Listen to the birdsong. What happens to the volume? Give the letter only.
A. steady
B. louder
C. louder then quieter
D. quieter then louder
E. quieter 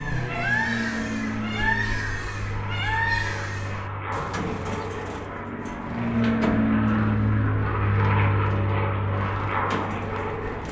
E.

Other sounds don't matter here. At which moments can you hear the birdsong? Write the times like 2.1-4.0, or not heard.
0.0-10.6.